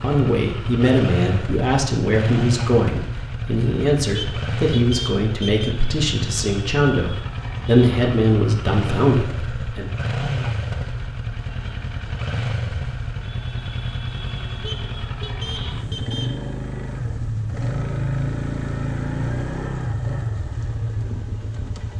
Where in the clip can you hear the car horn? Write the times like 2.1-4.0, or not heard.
4.1-5.8, 14.6-16.4.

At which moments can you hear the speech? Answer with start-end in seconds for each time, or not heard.
0.0-9.8.